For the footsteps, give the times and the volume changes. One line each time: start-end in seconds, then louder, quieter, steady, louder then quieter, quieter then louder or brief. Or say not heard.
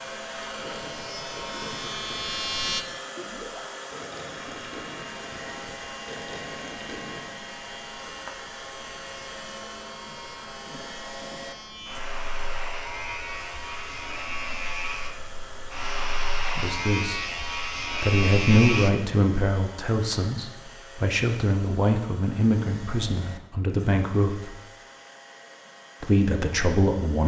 not heard.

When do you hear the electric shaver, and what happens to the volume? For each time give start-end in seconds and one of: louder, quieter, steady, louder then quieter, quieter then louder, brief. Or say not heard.
0.0-2.9 brief
4.5-18.9 louder.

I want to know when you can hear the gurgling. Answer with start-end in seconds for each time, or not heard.
0.4-7.3.